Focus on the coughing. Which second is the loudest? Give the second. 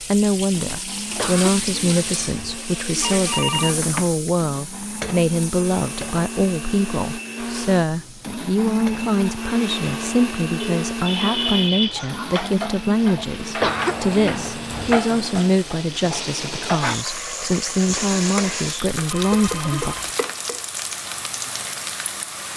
14 s.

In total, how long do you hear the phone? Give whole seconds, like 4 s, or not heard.
4 s.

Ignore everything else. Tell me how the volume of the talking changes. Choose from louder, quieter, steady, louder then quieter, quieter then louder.
steady.